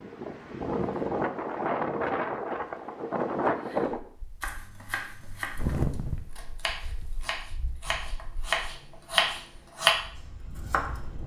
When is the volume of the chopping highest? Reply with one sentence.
The volume of the chopping peaks at 10 seconds.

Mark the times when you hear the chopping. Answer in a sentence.
The chopping can be heard from 4.4 to 11.1 s.